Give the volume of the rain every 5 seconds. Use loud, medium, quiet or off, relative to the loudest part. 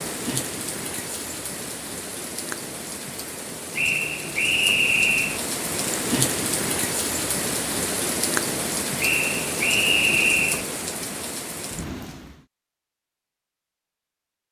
medium, loud, medium.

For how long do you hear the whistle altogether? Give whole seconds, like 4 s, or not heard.
3 s.